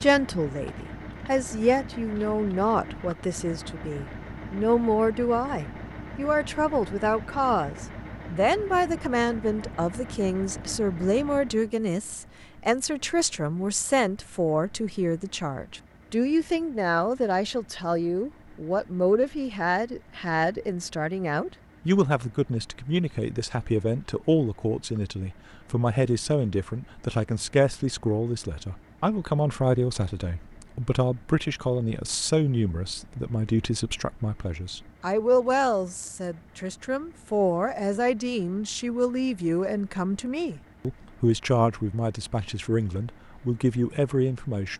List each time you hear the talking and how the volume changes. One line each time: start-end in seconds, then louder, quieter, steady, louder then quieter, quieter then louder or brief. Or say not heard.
0.0-44.7 steady.